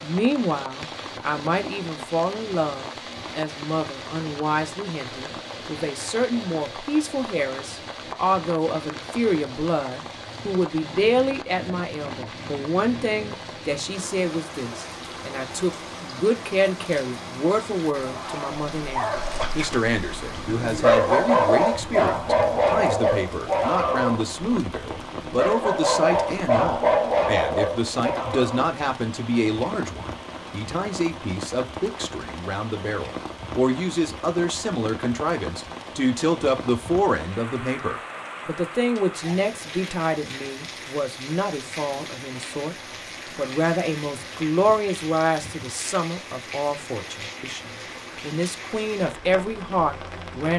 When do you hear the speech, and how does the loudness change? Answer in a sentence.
The speech can be heard from 0.0 to 42.8 s, at a steady volume; and from 43.4 to 50.5 s, getting quieter then louder.